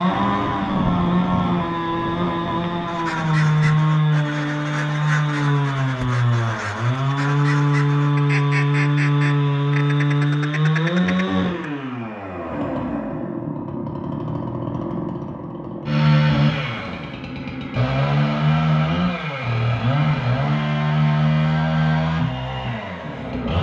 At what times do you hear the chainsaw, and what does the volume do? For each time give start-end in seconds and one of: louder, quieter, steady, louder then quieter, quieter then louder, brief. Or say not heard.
0.0-23.5 steady.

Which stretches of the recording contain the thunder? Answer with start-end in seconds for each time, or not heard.
0.4-3.9.